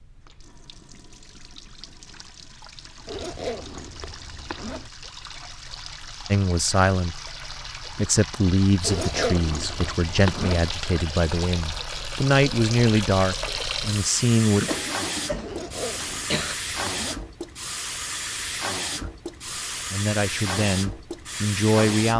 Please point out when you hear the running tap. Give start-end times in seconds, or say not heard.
0.0-22.1.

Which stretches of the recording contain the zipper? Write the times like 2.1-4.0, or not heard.
3.0-4.9, 8.8-10.7, 15.4-17.2.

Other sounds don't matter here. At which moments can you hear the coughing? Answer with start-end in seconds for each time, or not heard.
14.6-16.6.